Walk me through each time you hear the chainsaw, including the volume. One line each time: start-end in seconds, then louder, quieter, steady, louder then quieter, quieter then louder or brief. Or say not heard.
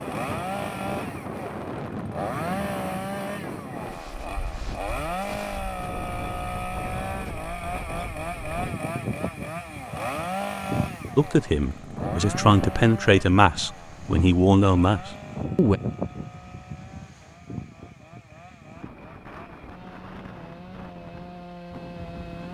0.0-22.4 quieter.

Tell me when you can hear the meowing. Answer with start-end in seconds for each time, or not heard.
not heard.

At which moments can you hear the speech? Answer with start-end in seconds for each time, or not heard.
11.2-15.8.